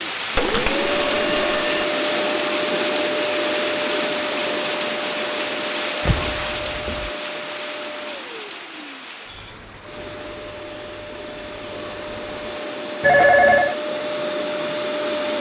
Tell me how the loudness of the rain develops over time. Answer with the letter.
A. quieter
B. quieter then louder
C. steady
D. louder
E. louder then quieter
A.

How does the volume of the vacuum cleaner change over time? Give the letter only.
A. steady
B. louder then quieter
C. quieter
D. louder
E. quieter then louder
E.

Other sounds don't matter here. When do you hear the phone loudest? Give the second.
13 s.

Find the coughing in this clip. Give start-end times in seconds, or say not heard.
not heard.